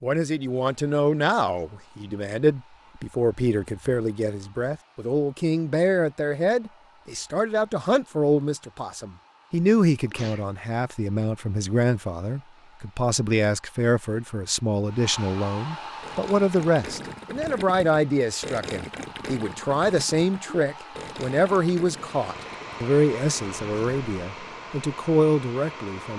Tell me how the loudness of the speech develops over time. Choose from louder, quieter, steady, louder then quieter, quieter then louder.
steady.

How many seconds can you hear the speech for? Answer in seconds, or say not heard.
26 s.